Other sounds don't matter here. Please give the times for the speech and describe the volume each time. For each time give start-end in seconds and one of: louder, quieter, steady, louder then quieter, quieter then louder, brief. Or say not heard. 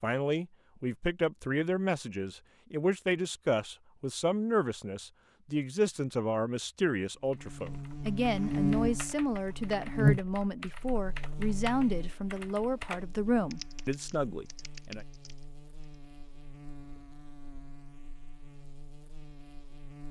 0.0-15.1 steady.